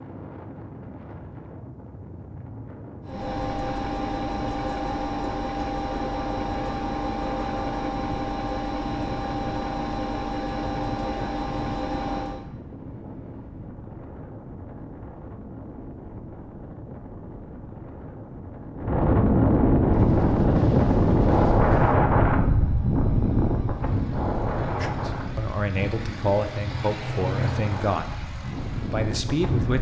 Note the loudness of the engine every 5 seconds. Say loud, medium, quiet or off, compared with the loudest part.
loud, loud, loud, off, quiet, medium.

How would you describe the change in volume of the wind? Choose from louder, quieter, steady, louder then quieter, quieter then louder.
louder then quieter.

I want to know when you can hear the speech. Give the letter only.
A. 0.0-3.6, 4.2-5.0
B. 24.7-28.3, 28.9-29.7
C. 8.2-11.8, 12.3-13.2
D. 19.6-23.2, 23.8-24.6
B.